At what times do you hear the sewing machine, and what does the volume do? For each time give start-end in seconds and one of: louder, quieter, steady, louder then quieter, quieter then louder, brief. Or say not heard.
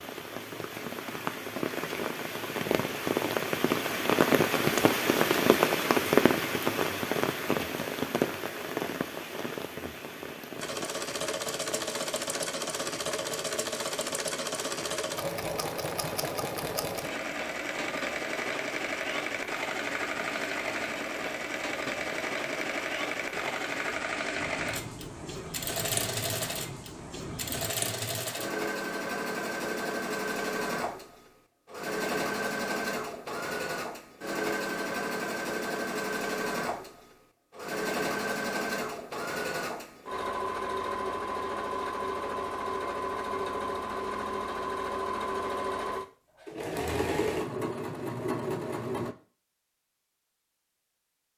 10.6-49.1 steady.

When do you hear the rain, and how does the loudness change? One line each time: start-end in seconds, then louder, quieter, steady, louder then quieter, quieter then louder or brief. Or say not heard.
0.0-27.8 quieter.